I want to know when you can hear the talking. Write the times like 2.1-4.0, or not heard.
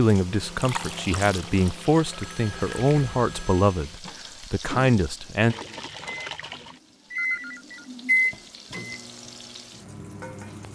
0.0-5.5.